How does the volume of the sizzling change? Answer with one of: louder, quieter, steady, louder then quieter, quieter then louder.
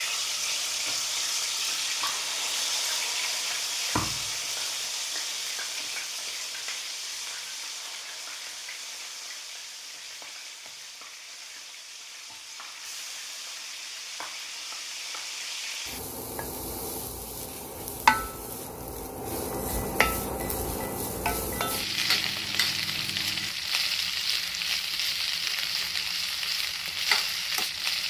quieter then louder.